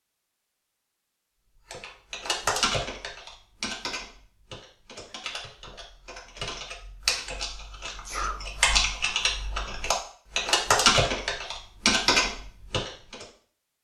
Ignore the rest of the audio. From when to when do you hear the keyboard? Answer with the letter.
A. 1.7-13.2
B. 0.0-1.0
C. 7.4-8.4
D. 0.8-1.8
A.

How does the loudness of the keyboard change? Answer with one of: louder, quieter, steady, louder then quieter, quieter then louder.
quieter then louder.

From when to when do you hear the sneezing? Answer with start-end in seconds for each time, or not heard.
7.4-8.4.